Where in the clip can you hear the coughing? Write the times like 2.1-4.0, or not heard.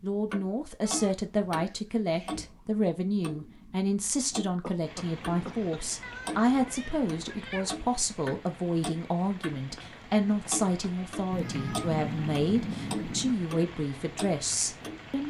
4.6-5.8.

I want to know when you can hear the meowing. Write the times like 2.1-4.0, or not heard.
0.8-2.5, 6.0-7.8, 11.3-13.3.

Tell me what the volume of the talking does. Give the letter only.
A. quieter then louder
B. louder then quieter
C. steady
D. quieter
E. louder
C.